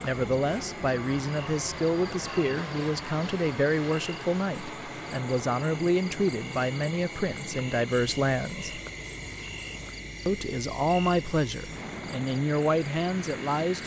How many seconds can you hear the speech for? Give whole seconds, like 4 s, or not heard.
12 s.